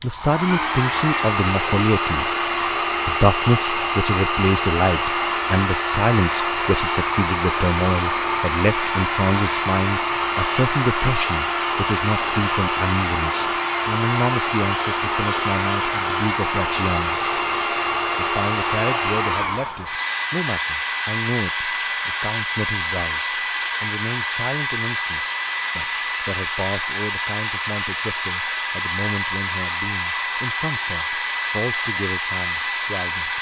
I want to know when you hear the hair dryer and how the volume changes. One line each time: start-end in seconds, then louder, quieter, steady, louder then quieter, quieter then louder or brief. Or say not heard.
0.0-33.3 steady.